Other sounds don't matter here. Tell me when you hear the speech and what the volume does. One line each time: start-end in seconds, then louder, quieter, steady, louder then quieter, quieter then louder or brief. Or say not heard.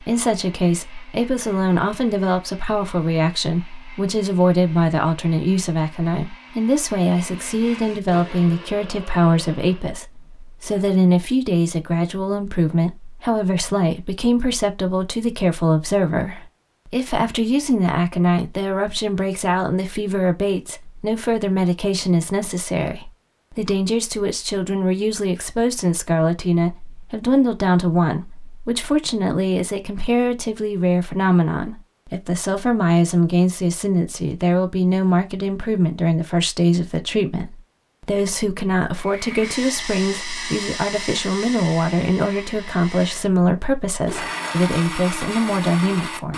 0.0-46.3 steady.